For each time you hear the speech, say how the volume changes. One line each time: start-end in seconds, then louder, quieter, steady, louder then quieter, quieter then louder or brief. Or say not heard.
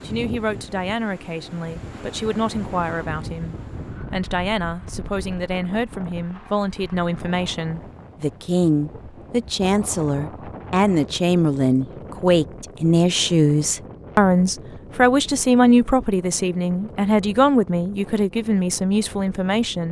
0.1-19.8 louder.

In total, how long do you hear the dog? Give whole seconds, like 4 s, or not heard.
not heard.